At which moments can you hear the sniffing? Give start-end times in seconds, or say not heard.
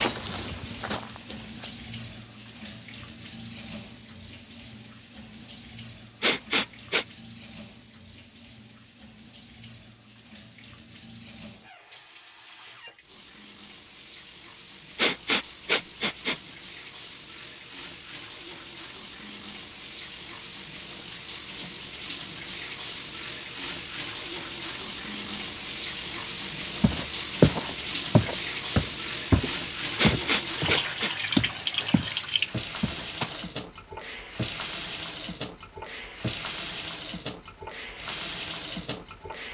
6.2-7.0, 14.9-16.5, 29.9-31.1.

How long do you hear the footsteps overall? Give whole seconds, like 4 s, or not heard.
8 s.